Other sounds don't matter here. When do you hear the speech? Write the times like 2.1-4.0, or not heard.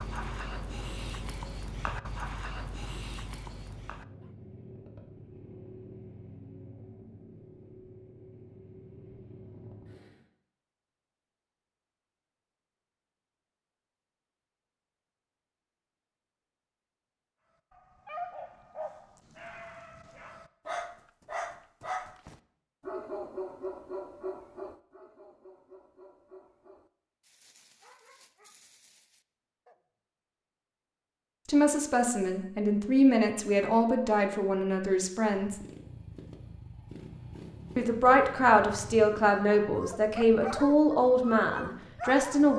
31.4-35.6, 37.8-42.5.